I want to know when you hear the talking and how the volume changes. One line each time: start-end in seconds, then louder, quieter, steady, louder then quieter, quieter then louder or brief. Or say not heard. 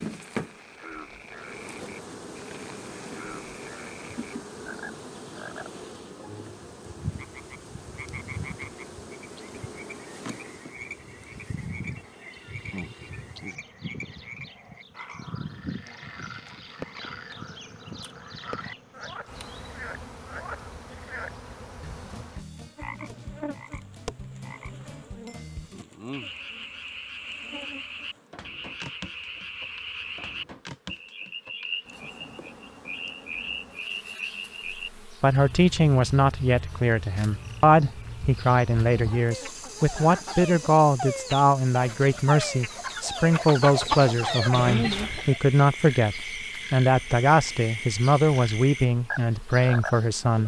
35.2-50.4 steady.